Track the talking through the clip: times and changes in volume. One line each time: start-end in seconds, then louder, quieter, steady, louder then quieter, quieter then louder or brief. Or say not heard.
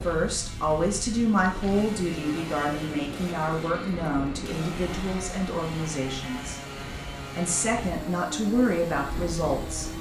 0.0-6.6 quieter
7.3-9.9 brief.